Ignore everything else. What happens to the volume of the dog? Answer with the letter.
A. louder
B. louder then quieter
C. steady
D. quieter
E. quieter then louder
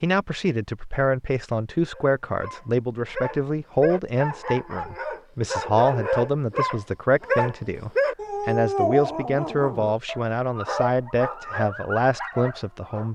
B.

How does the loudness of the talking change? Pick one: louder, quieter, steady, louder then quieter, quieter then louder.
steady.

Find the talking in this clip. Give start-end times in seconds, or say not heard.
0.0-13.0.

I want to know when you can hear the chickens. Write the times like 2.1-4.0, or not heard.
not heard.